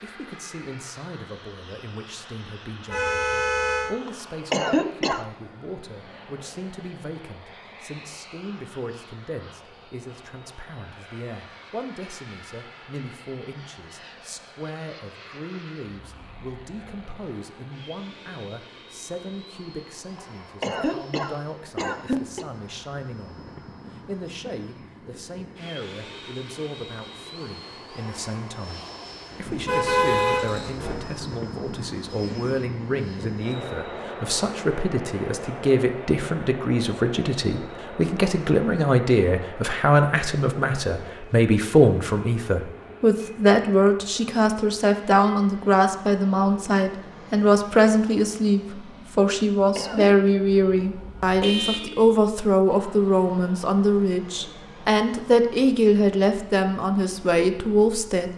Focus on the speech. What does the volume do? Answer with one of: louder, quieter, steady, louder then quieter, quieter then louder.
louder.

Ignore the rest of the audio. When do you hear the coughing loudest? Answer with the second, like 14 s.
5 s.